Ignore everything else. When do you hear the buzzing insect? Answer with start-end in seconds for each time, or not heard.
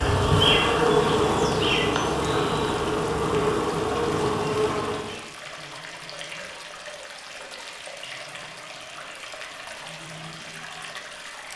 0.0-5.2.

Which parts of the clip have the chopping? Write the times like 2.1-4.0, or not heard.
not heard.